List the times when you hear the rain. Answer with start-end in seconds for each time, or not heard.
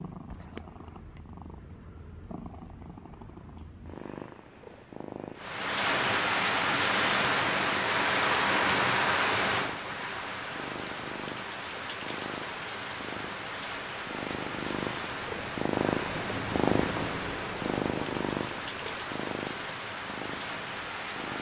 5.3-21.3.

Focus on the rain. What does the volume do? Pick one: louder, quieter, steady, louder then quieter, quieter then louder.
quieter.